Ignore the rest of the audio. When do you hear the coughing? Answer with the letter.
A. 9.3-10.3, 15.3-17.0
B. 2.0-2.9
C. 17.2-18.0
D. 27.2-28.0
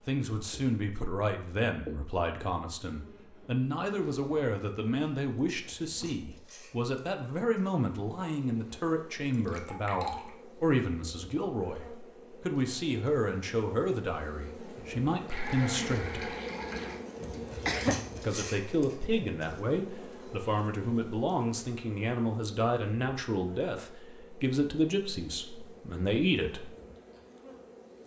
C.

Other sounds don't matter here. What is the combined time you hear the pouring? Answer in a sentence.
The pouring can be heard for 3 seconds in total.